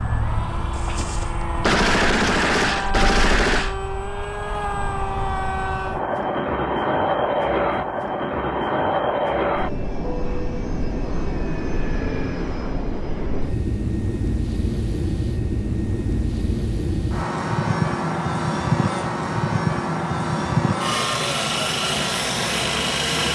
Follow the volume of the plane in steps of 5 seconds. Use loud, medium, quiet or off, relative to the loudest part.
medium, loud, medium, loud, loud.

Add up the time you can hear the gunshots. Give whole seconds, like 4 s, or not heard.
3 s.